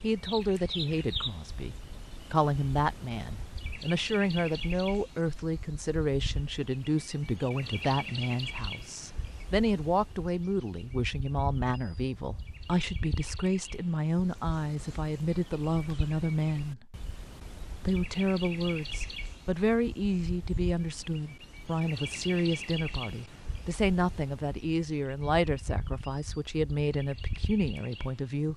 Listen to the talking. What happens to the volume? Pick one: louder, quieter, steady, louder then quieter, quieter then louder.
steady.